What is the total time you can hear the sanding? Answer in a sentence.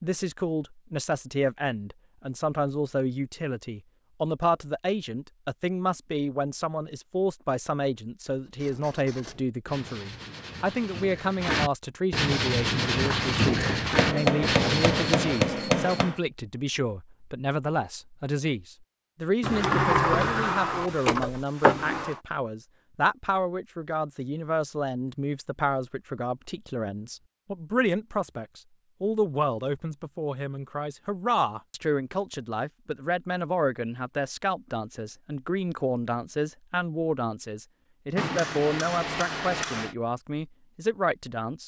You can hear the sanding for 7 seconds altogether.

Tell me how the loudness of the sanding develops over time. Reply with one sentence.
The volume of the sanding goes up.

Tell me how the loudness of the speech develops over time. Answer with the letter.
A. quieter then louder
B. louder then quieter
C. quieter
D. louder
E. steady
E.